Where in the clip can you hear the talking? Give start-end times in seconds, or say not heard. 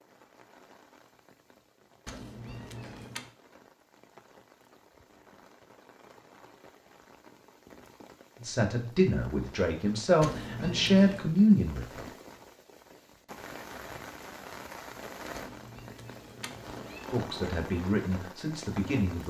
8.4-12.1, 17.1-19.2.